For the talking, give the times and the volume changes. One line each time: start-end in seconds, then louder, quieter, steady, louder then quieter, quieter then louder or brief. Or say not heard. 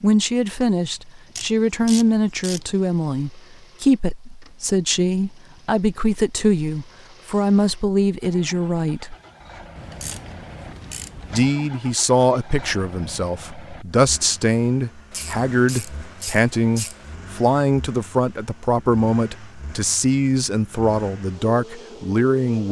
0.0-9.2 steady
11.3-22.6 steady.